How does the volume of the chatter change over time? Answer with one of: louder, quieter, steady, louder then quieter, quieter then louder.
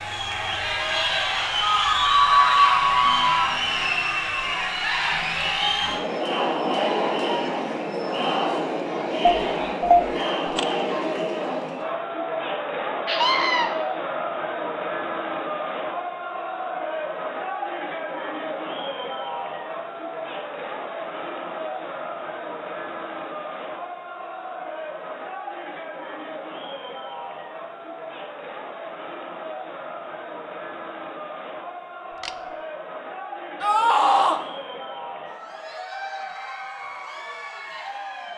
quieter.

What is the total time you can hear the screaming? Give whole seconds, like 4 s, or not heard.
3 s.